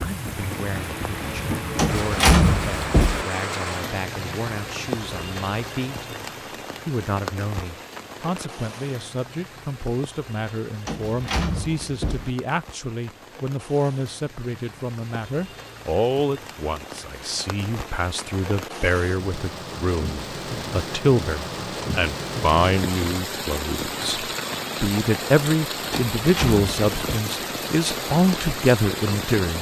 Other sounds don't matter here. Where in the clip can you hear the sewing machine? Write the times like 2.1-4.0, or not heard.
not heard.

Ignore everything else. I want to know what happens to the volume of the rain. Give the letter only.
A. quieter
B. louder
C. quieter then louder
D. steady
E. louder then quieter
C.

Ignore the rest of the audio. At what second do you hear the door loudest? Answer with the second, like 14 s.
2 s.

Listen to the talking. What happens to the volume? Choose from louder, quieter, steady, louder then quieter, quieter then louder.
louder.